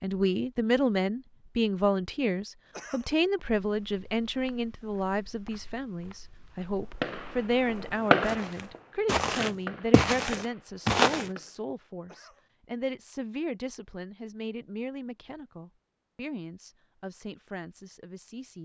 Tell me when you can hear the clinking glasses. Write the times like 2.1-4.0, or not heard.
not heard.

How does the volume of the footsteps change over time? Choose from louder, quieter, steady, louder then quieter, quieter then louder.
louder.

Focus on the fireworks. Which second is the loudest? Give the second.
8 s.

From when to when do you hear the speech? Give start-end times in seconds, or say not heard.
0.0-18.6.